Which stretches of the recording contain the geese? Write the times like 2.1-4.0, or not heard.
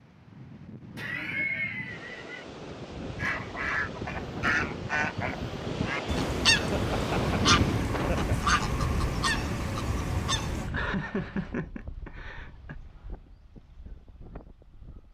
3.1-10.7.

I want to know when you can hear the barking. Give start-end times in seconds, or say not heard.
not heard.